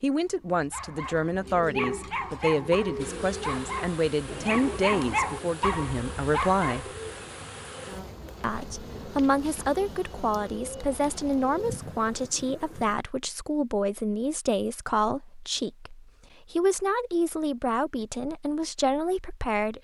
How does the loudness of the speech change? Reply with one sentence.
The volume of the speech stays about the same.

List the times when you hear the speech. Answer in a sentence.
The speech can be heard from 0.0 to 6.8 s and from 8.4 to 19.7 s.